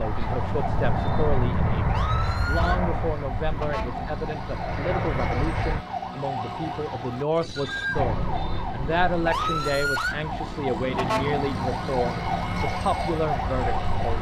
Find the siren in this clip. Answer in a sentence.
The siren can be heard from 0.0 to 14.1 s.